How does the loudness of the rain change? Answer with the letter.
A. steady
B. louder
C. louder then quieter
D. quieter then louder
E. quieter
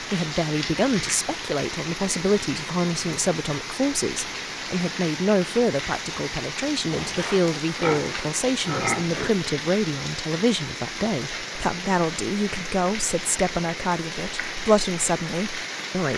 A.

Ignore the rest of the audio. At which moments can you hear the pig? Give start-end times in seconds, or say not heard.
6.9-9.3.